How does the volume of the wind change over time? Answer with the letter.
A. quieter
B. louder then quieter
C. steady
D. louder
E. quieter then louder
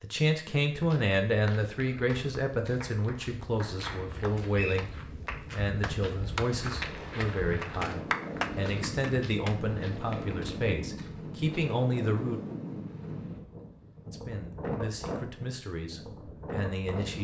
C.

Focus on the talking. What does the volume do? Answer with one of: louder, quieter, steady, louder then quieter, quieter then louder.
quieter.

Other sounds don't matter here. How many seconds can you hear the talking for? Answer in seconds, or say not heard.
15 s.